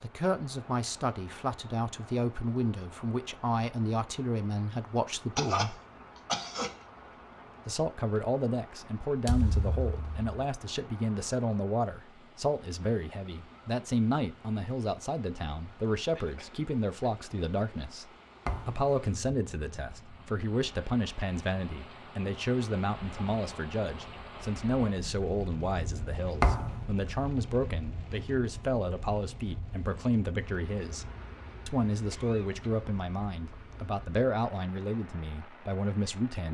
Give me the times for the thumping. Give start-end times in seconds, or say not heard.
9.2-10.2, 18.4-18.9, 26.4-26.8.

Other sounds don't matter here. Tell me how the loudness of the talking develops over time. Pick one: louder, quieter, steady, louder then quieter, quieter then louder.
steady.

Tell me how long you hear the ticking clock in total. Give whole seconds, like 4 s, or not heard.
not heard.